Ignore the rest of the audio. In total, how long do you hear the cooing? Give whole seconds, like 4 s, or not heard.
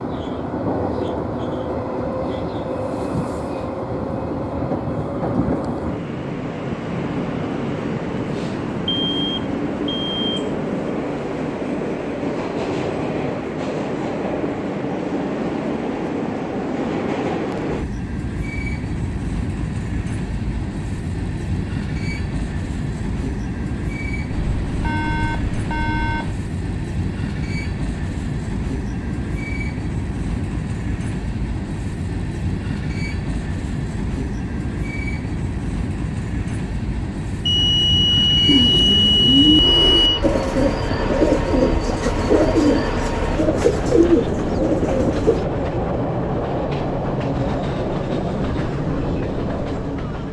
7 s.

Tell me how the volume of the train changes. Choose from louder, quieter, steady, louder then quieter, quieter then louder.
steady.